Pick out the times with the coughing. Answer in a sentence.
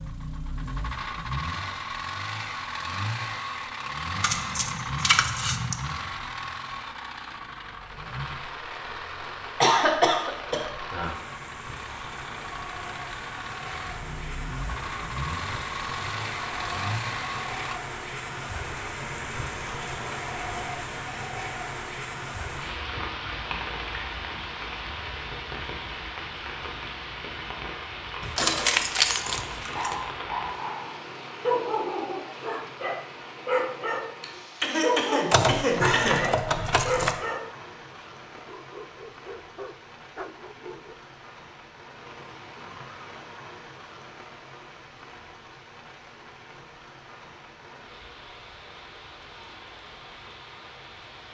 The coughing can be heard from 9.6 to 10.7 s and from 34.2 to 36.2 s.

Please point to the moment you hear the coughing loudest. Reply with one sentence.
The loudest moment of the coughing is at 10 seconds.